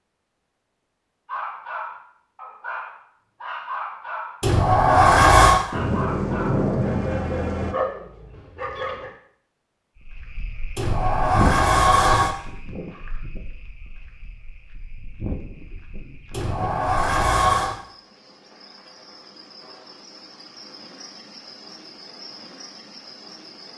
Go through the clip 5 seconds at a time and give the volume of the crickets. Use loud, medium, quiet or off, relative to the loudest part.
off, off, loud, medium, medium.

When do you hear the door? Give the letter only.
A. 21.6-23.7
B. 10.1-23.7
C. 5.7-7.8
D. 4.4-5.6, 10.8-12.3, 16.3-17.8
D.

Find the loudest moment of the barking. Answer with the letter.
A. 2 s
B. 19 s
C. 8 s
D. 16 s
C.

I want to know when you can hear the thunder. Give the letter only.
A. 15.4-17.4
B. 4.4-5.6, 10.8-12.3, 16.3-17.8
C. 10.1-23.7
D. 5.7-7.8
D.